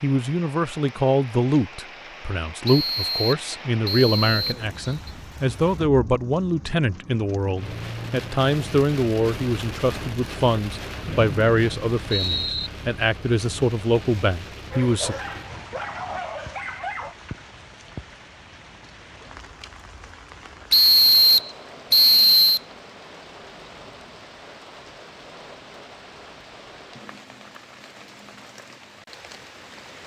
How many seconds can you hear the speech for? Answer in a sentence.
The speech can be heard for 15 seconds in total.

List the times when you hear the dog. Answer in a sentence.
You can hear the dog from 14.7 to 17.1 s.